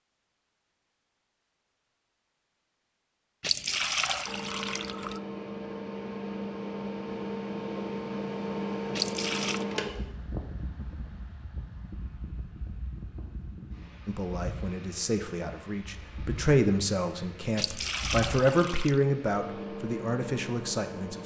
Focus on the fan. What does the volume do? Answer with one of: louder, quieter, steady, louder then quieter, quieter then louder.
quieter then louder.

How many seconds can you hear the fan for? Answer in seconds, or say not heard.
17 s.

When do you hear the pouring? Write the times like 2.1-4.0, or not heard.
3.4-5.2, 8.9-9.7, 17.6-19.0.